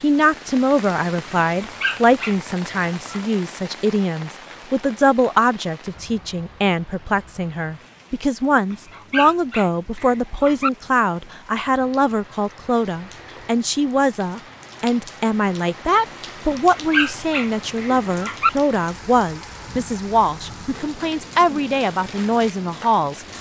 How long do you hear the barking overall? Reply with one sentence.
You can hear the barking for 6 seconds altogether.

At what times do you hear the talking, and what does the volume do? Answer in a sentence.
The talking can be heard from 0.0 to 23.2 s, at a steady volume.